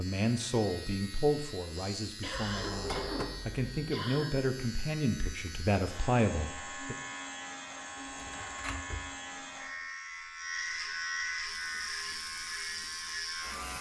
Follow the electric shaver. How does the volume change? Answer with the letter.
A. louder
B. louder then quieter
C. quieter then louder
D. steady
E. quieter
A.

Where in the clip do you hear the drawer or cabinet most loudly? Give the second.
3 s.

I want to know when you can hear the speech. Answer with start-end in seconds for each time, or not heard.
0.0-7.0.